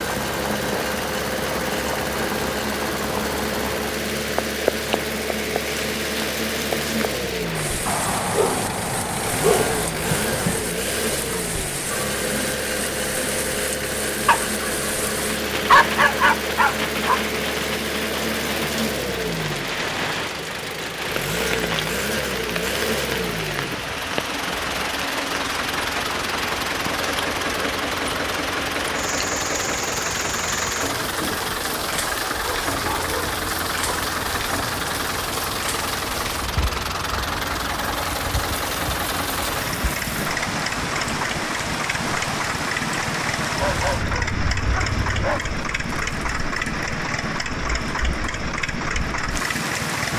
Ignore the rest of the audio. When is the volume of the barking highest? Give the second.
16 s.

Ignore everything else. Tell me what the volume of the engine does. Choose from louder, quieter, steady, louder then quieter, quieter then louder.
steady.